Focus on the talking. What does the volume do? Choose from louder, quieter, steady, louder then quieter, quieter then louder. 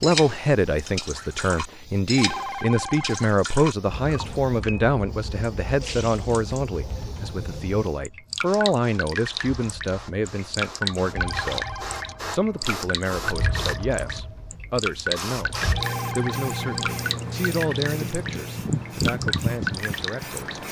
quieter.